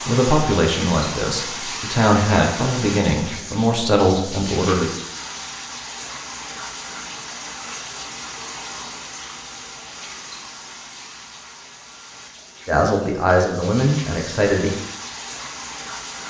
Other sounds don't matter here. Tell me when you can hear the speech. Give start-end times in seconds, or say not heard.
0.1-4.9, 12.7-14.7.